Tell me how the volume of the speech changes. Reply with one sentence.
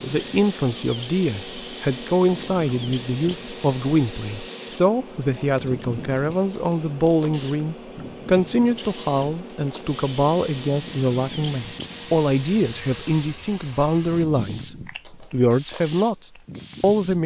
The loudness of the speech stays about the same.